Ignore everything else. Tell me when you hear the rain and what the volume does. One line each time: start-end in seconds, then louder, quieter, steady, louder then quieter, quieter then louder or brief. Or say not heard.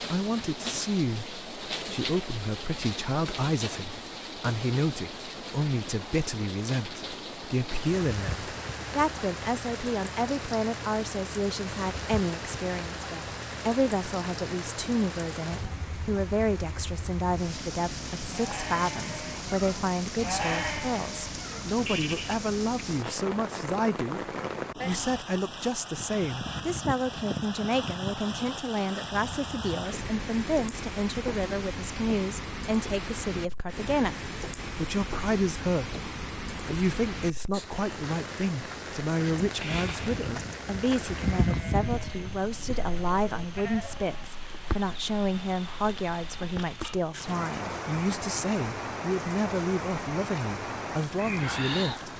0.0-52.1 steady.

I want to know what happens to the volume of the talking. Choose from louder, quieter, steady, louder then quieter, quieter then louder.
steady.